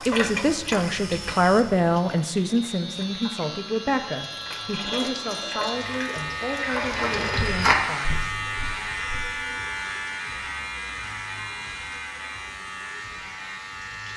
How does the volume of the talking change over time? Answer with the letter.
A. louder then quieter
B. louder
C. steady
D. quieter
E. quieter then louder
D.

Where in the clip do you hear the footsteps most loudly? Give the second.
8 s.